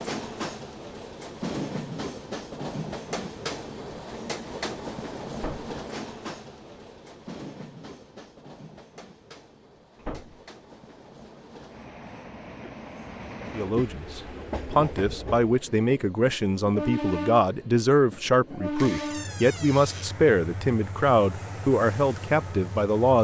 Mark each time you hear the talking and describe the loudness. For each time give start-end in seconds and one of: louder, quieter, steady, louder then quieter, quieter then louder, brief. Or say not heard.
13.5-23.1 steady.